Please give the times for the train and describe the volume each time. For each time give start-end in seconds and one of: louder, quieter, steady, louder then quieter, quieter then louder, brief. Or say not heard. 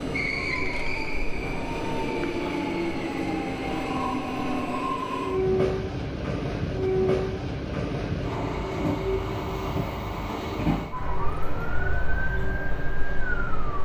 0.0-13.7 quieter.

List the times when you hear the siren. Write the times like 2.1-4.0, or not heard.
0.0-1.4, 10.9-13.7.